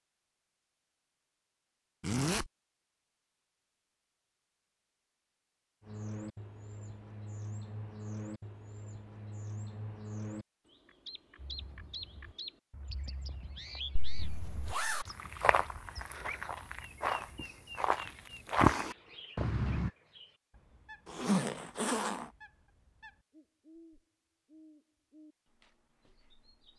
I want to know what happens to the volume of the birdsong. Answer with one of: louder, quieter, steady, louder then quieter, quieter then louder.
quieter.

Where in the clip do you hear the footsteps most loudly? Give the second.
19 s.